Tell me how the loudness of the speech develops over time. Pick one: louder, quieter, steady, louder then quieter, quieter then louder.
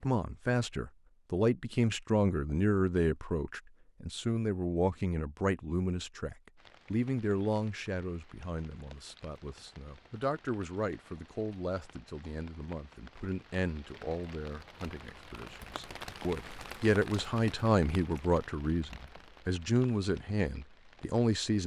quieter then louder.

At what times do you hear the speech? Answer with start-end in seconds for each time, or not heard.
0.0-21.6.